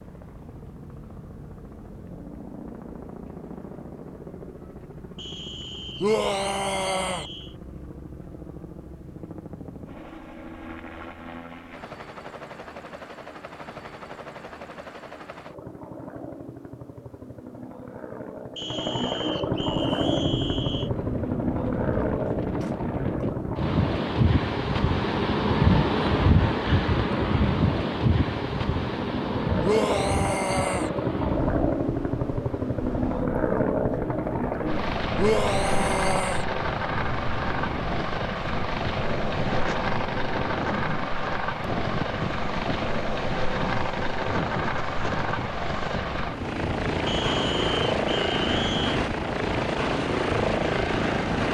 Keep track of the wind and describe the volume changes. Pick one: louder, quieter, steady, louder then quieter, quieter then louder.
quieter.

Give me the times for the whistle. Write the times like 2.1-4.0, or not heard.
5.2-7.5, 18.6-20.9, 47.0-49.0.